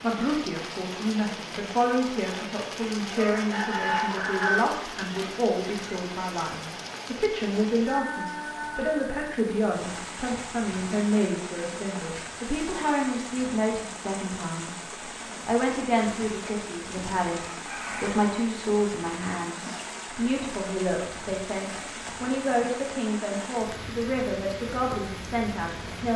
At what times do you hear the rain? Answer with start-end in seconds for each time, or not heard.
0.0-26.1.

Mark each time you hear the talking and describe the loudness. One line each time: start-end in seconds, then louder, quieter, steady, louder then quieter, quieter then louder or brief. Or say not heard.
0.0-14.7 steady
15.4-26.1 steady.